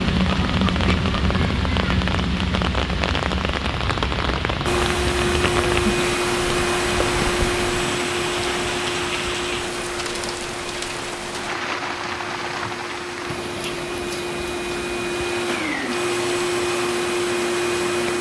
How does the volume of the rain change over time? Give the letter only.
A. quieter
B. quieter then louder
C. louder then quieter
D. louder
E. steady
A.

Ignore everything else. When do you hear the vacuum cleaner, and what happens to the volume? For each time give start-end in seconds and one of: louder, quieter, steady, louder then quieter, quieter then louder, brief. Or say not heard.
4.7-18.1 quieter then louder.